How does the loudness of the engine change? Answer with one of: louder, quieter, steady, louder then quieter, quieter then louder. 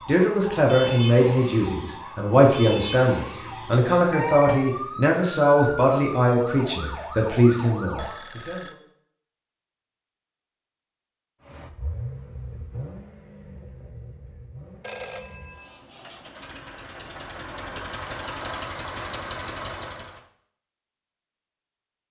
quieter then louder.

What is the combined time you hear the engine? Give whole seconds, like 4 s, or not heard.
9 s.